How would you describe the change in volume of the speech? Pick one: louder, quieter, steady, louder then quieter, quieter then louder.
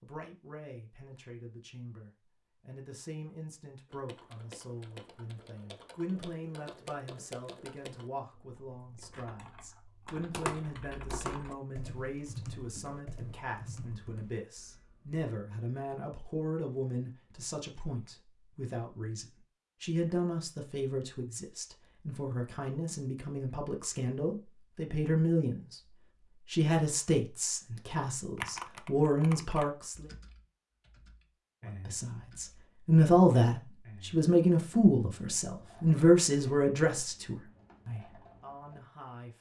louder.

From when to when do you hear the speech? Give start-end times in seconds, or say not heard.
0.0-25.8, 26.4-30.1, 31.9-39.3.